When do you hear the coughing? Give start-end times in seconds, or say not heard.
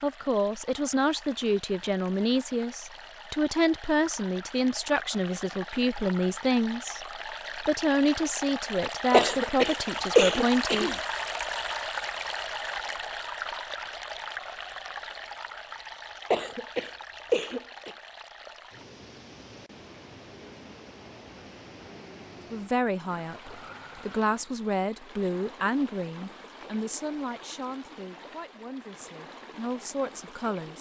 9.1-10.9, 16.3-17.9.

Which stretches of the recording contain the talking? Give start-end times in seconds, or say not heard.
0.0-10.9, 22.5-30.7.